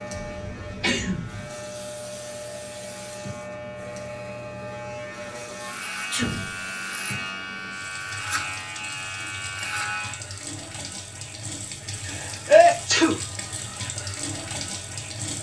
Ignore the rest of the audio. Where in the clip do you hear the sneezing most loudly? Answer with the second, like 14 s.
13 s.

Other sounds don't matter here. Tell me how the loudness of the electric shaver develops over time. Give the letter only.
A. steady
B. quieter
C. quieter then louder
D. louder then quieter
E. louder
E.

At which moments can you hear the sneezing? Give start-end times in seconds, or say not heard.
0.3-1.5, 6.1-6.6, 12.1-13.2.